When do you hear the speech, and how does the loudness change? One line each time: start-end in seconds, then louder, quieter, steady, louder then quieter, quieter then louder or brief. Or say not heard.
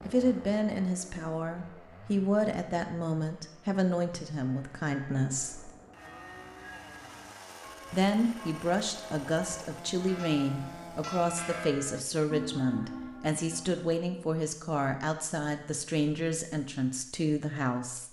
0.1-5.7 steady
7.9-18.0 steady.